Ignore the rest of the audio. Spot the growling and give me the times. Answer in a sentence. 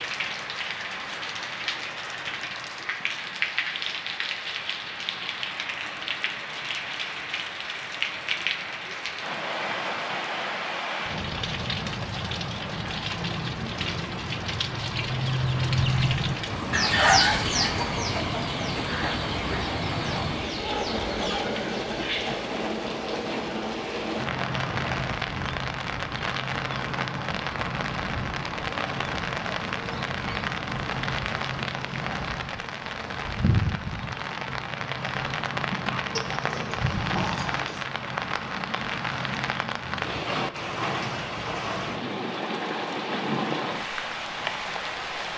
You can hear the growling from 36.1 to 37.9 s.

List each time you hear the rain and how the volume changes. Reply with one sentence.
You can hear the rain from 0.0 to 45.3 s, at a steady volume.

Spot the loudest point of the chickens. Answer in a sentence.
The volume of the chickens peaks at 17 seconds.